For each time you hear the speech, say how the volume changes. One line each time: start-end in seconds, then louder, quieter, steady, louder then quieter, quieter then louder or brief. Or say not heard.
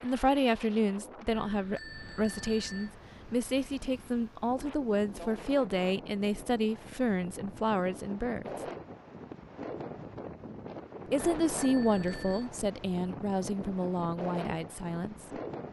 0.0-8.6 steady
11.1-15.2 quieter.